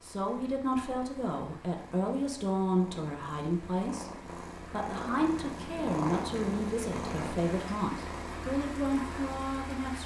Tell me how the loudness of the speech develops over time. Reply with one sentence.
The loudness of the speech stays about the same.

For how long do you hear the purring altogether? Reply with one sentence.
The purring can be heard for 10 seconds in total.